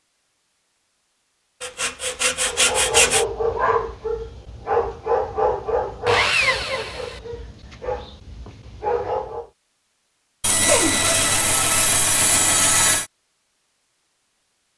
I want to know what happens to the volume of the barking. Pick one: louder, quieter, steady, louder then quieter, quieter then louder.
quieter then louder.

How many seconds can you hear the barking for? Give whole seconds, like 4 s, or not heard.
7 s.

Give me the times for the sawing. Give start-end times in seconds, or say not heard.
1.6-3.2, 6.0-7.2, 10.4-13.1.